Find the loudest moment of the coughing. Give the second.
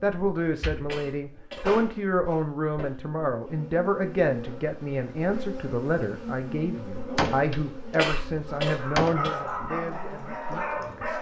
8 s.